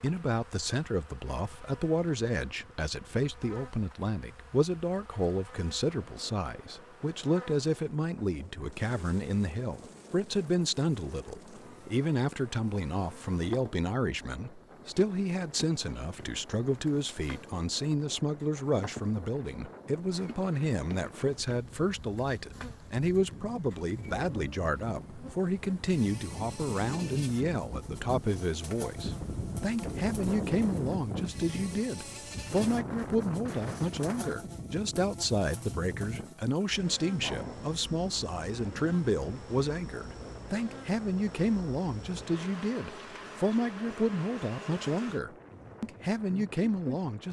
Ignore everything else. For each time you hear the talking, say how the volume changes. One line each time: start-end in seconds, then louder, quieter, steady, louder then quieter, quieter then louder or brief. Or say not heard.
0.0-47.2 steady.